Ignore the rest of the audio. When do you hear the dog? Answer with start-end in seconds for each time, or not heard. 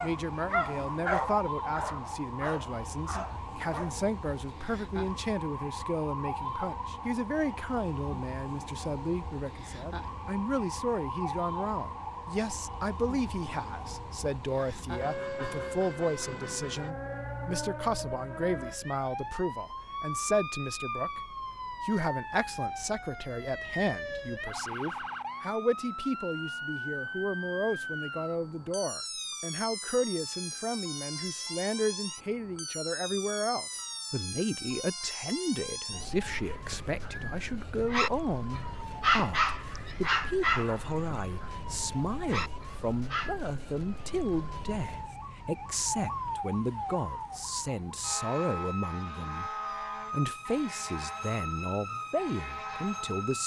0.0-4.0, 36.3-43.4.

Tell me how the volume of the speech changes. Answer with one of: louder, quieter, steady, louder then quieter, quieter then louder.
steady.